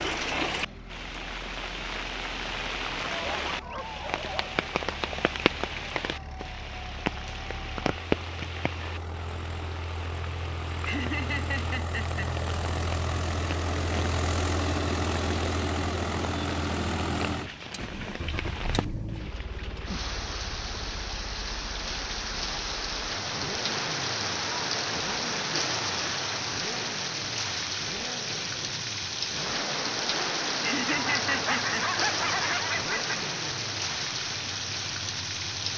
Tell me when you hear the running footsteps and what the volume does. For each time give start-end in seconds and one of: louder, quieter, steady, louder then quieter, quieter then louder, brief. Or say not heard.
not heard.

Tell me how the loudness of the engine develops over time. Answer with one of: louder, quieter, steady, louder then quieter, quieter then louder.
louder then quieter.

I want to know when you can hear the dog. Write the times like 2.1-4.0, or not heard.
3.0-4.6, 30.9-33.2.